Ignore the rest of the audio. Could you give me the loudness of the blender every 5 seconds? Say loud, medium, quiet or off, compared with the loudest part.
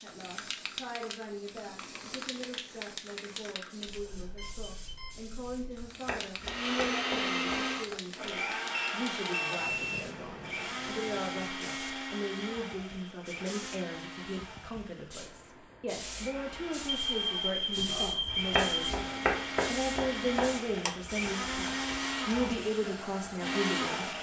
off, loud, medium, medium, loud.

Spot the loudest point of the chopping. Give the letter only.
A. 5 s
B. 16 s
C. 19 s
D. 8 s
C.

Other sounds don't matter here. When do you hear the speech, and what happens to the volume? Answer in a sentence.
The speech can be heard from 0.0 to 24.1 s, getting louder.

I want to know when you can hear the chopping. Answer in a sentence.
The chopping can be heard from 5.8 to 8.0 s and from 18.2 to 20.8 s.